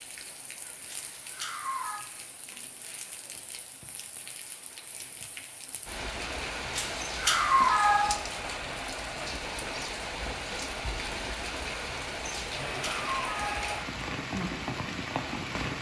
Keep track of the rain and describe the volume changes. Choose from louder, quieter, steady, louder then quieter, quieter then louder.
louder.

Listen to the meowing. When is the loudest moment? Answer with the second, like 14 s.
8 s.